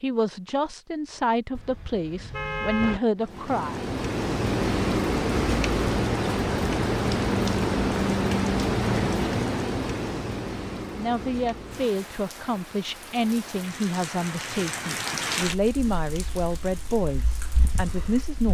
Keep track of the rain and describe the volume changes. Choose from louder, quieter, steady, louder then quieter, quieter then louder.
quieter.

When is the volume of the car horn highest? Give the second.
3 s.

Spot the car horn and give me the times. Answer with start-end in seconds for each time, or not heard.
1.5-3.0.